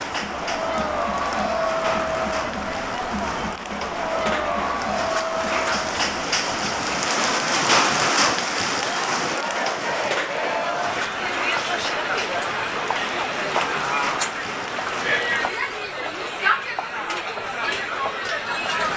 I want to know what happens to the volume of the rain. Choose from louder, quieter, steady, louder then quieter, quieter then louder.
louder then quieter.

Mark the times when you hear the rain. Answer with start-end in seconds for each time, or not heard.
0.0-15.5.